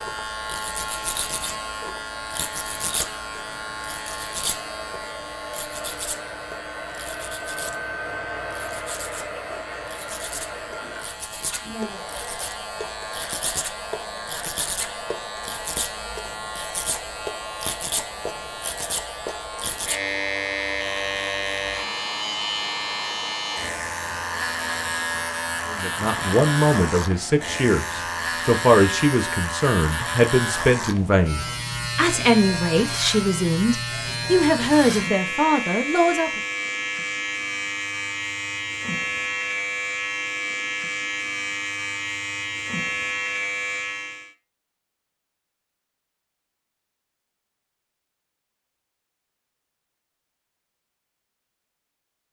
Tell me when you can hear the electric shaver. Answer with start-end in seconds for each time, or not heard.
0.0-44.3.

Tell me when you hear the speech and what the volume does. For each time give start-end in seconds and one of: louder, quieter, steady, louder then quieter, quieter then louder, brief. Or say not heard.
25.6-36.4 steady.